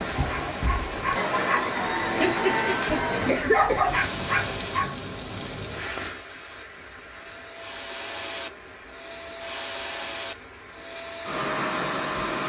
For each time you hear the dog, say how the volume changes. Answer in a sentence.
You can hear the dog from 0.1 to 5.0 s, getting louder.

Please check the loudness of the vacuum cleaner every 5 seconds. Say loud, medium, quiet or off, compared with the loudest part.
loud, medium, loud.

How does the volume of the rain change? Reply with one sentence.
The loudness of the rain goes down.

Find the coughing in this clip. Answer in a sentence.
The coughing can be heard from 3.1 to 3.9 s.